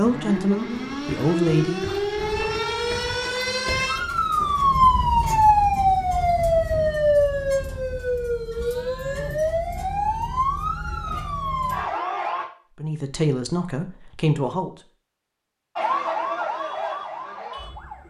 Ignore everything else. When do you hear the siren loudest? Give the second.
5 s.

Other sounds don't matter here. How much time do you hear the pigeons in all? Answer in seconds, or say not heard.
not heard.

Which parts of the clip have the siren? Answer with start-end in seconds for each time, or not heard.
0.0-12.4, 15.8-18.0.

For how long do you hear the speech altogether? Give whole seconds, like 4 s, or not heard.
4 s.